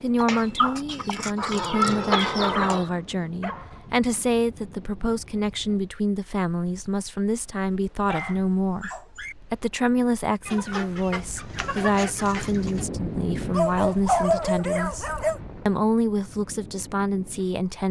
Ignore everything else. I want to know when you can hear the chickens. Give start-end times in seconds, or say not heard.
0.1-2.9, 10.4-12.8.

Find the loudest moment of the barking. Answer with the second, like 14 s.
14 s.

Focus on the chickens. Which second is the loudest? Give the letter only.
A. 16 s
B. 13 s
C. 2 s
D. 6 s
C.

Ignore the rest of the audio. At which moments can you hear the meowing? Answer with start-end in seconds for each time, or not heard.
not heard.